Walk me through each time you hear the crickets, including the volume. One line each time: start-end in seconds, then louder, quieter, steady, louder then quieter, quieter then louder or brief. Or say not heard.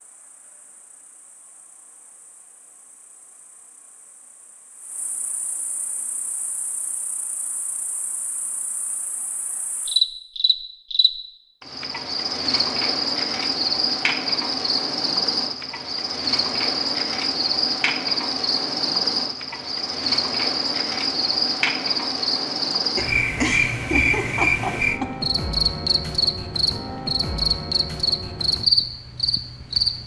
0.0-30.0 louder.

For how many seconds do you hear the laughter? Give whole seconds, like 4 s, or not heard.
2 s.